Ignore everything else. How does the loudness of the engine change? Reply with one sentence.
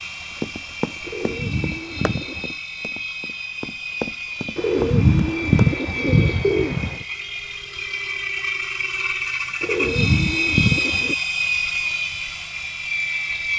The volume of the engine goes up.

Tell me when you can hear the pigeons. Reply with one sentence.
You can hear the pigeons from 1.1 to 2.5 s, from 4.5 to 7.0 s and from 9.6 to 11.2 s.